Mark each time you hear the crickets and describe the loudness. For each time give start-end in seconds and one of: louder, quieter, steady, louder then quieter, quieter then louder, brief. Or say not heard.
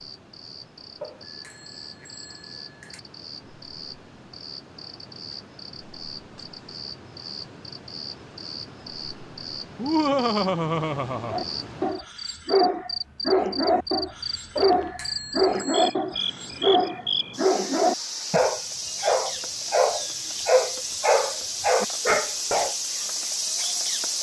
0.0-24.1 louder.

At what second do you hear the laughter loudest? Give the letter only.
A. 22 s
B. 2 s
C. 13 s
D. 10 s
D.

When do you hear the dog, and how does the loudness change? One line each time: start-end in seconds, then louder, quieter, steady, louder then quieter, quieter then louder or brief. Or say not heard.
11.2-22.8 steady.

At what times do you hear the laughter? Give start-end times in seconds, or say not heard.
9.8-11.4.